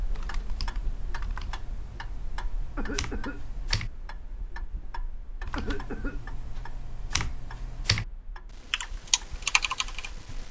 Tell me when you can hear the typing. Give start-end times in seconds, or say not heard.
0.0-3.9, 5.5-8.1, 8.7-10.4.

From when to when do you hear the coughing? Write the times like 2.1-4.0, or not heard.
2.8-3.5, 5.5-6.2.